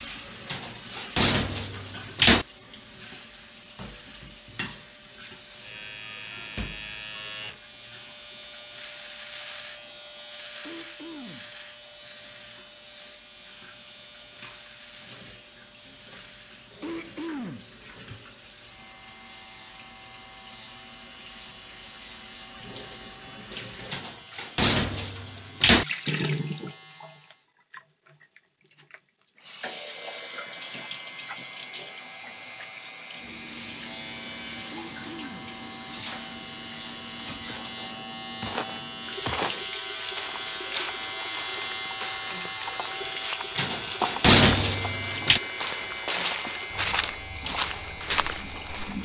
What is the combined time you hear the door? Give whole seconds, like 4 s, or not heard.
6 s.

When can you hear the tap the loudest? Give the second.
26 s.